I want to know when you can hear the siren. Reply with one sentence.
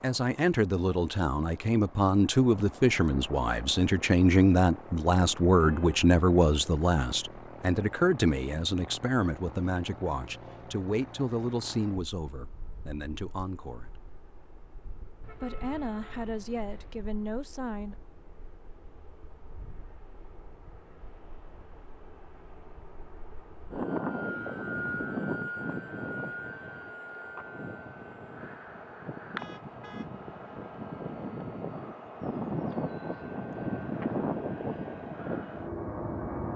You can't hear the siren here.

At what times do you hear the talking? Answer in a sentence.
The talking can be heard from 0.0 to 13.9 s and from 15.3 to 17.9 s.